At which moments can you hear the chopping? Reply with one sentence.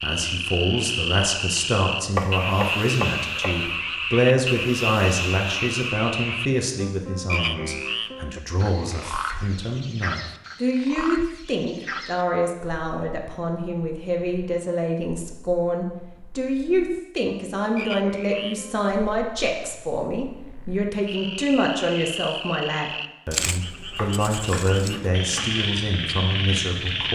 You can hear the chopping from 2.1 to 3.7 s and from 23.9 to 25.6 s.